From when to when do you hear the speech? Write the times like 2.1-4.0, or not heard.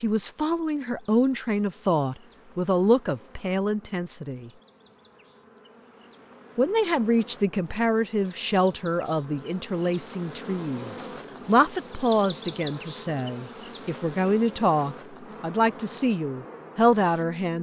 0.0-4.5, 6.5-17.5.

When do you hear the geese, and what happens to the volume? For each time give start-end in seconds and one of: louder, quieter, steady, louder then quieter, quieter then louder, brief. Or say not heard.
not heard.